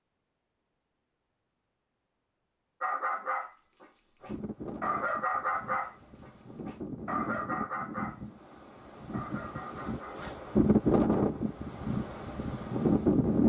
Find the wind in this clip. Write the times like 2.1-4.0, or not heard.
4.2-13.4.